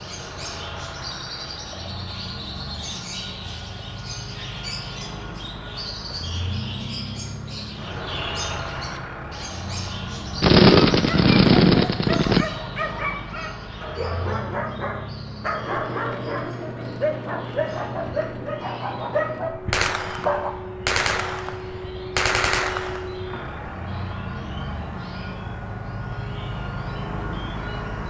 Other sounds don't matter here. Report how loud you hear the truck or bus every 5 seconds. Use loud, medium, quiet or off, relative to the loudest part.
medium, loud, loud, loud, loud, loud.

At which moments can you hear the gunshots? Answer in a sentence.
The gunshots can be heard from 10.4 to 12.4 s, from 19.7 to 21.6 s and from 22.1 to 23.1 s.